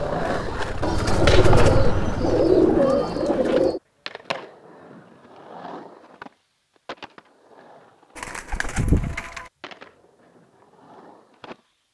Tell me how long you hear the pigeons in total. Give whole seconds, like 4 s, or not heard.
4 s.